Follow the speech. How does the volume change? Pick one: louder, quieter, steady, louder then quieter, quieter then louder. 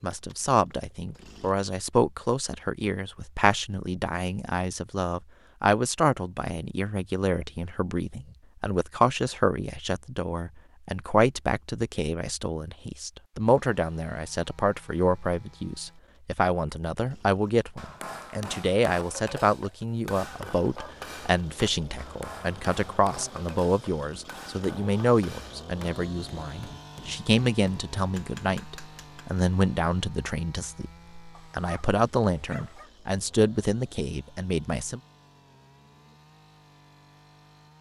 steady.